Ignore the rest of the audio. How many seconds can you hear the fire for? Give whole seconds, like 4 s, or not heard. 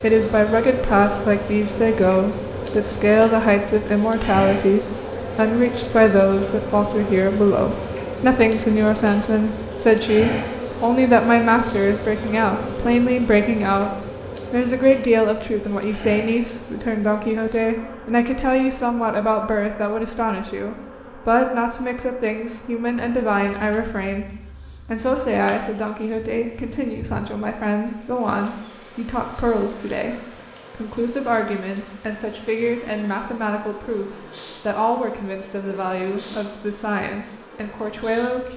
not heard.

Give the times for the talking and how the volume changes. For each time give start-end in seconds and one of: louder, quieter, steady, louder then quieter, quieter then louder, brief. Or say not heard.
0.0-38.5 quieter.